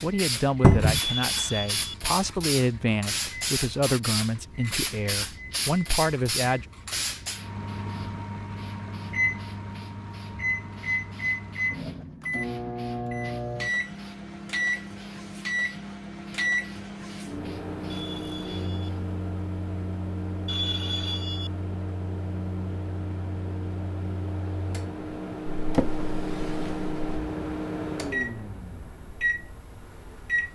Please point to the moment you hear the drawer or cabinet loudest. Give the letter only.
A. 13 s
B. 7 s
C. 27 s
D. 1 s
D.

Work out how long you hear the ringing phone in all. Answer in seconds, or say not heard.
3 s.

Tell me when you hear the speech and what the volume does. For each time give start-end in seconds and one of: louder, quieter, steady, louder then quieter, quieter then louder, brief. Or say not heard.
0.0-6.7 steady.